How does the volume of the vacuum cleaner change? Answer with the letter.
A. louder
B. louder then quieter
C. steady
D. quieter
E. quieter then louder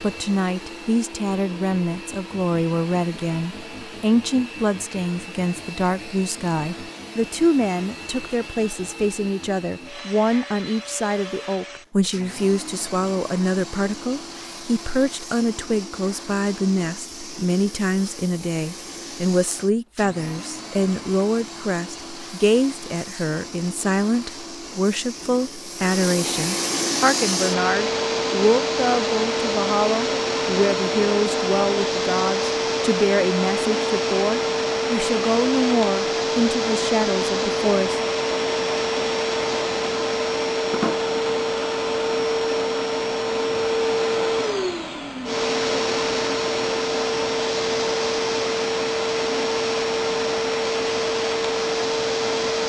A.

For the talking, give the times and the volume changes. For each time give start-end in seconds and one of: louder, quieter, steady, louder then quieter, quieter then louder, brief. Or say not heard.
0.0-38.0 steady.